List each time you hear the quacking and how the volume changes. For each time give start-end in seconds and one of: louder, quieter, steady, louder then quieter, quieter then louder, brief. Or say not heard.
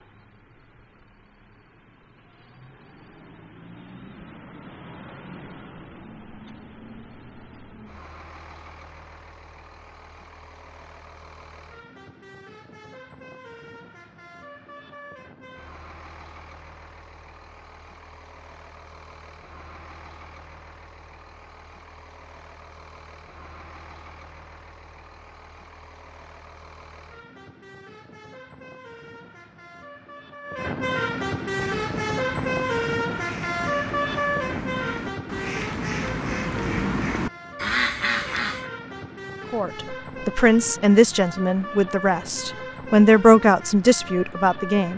31.7-38.7 louder.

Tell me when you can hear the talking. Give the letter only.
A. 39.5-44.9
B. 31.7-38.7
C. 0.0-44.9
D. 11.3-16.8
A.